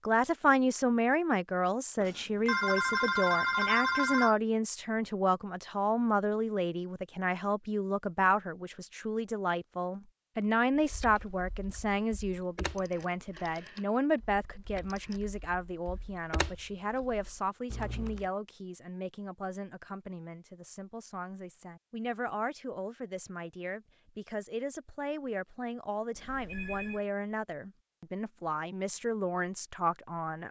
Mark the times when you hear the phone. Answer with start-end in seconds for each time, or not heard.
2.0-4.3, 12.6-13.9, 14.8-15.2, 26.1-27.1.